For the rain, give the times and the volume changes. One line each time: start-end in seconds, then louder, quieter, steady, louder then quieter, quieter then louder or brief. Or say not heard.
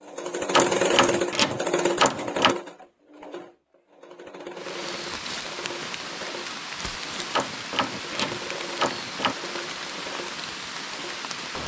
4.5-11.6 steady.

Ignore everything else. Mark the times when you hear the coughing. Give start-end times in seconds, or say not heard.
not heard.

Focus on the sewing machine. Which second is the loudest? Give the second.
1 s.